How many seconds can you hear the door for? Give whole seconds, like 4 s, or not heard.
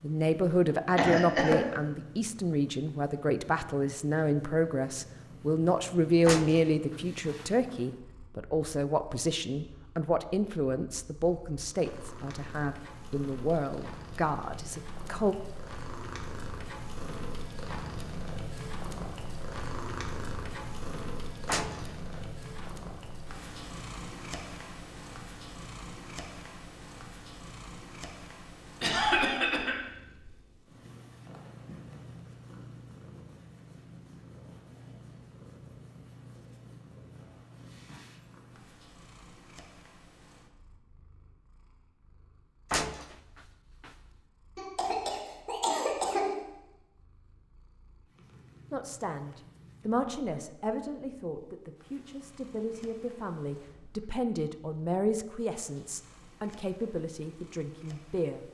4 s.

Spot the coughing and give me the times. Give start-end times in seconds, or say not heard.
0.9-1.6, 28.8-29.8, 44.5-46.4.